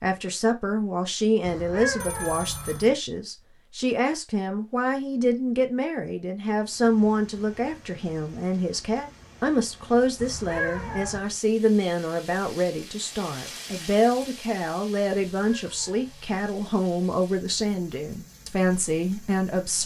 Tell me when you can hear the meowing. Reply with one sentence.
You can hear the meowing from 1.4 to 3.0 s, from 10.2 to 11.2 s and from 15.3 to 16.5 s.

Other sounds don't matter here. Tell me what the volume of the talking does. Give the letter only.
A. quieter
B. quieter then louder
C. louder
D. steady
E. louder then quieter
D.